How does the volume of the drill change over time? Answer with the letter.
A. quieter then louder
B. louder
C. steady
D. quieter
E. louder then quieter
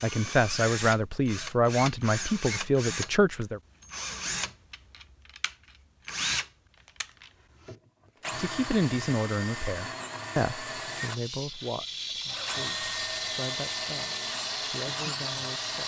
C.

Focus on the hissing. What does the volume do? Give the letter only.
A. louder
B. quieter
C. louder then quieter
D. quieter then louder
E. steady
E.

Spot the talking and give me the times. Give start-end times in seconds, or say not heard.
0.0-3.6, 8.3-15.8.